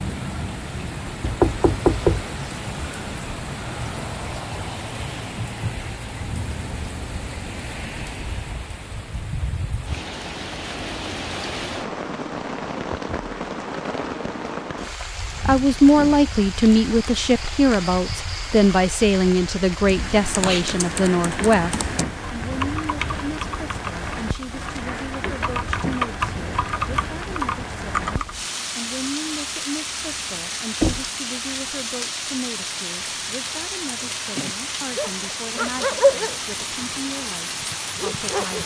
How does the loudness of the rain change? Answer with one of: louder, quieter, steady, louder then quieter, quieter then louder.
steady.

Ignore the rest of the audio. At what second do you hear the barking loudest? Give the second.
36 s.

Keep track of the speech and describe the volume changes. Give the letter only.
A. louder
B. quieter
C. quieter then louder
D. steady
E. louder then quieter
B.